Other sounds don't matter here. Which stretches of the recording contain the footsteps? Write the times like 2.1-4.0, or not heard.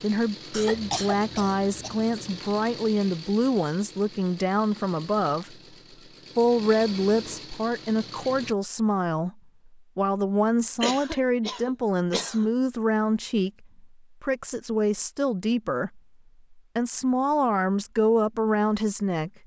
not heard.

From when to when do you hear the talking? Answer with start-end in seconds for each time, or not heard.
0.0-5.5, 6.3-19.4.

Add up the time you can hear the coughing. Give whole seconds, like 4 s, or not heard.
3 s.